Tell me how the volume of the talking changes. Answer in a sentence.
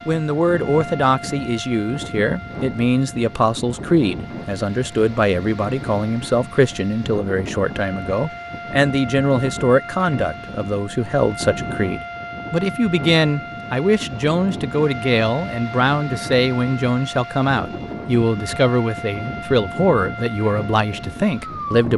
The loudness of the talking stays about the same.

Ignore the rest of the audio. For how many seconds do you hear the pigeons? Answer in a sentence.
You can't hear the pigeons here.